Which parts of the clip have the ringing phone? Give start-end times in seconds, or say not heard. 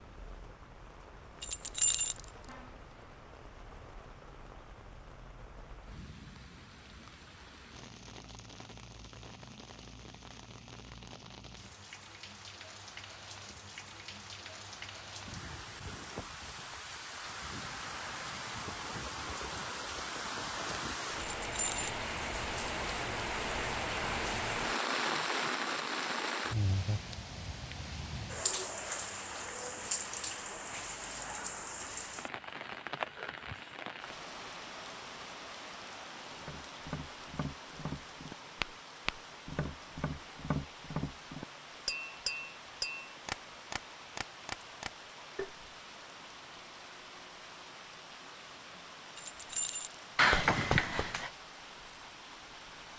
50.1-51.3.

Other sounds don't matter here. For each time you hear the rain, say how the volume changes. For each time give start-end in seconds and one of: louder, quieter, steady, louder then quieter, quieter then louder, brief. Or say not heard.
0.0-52.9 louder then quieter.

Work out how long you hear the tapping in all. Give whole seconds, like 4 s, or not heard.
9 s.